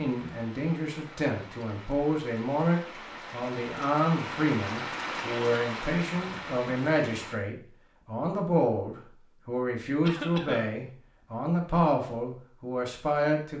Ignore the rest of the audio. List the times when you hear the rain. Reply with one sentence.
You can hear the rain from 0.0 to 7.4 s.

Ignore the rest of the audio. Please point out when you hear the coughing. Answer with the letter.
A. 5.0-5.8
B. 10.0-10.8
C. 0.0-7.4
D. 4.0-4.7
B.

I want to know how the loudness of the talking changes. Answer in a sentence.
The volume of the talking stays about the same.